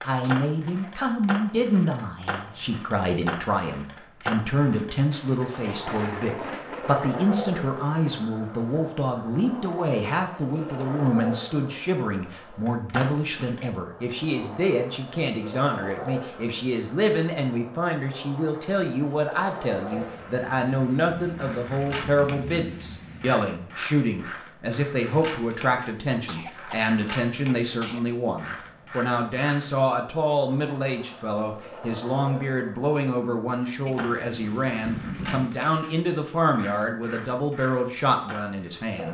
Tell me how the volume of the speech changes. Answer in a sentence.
The loudness of the speech stays about the same.